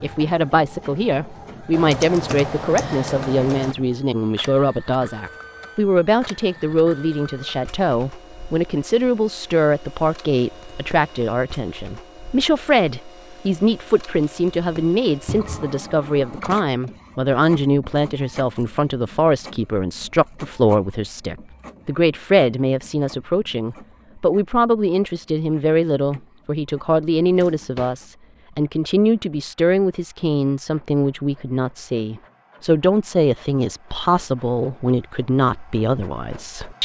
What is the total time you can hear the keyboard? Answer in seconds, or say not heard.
2 s.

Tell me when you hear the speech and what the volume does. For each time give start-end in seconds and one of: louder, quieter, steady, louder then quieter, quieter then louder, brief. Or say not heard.
0.0-36.8 steady.